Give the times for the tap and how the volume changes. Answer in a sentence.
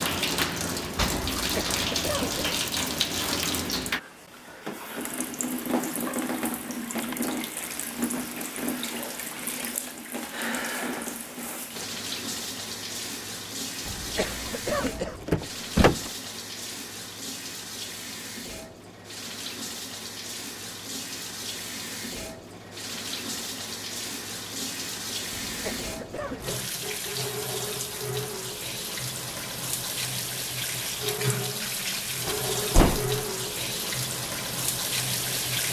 You can hear the tap from 0.0 to 35.6 s, getting quieter then louder.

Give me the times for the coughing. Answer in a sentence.
You can hear the coughing from 1.4 to 2.4 s, from 13.8 to 15.2 s and from 25.4 to 26.6 s.